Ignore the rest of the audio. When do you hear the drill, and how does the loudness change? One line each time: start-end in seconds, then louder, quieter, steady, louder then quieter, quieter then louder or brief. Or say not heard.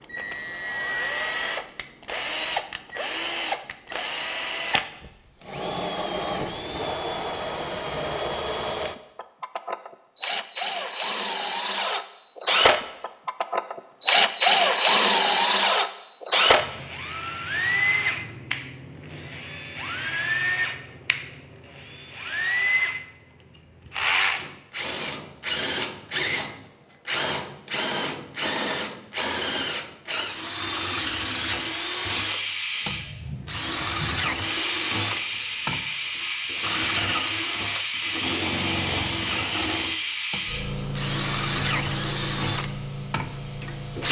0.0-44.0 louder then quieter.